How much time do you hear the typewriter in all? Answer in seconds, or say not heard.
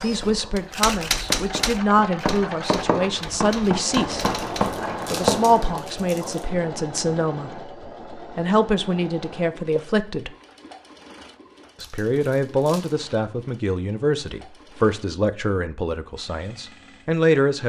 5 s.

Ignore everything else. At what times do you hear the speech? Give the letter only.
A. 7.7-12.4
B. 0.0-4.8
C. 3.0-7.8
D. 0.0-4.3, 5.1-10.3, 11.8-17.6
D.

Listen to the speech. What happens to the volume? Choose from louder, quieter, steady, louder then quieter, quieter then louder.
steady.